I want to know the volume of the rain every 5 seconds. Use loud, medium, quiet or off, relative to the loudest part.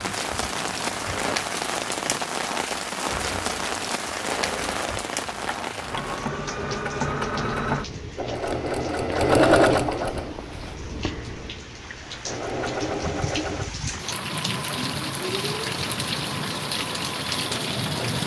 loud, medium, medium, loud.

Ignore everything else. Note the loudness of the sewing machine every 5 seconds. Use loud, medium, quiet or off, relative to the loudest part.
quiet, loud, medium, quiet.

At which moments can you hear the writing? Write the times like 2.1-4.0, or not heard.
not heard.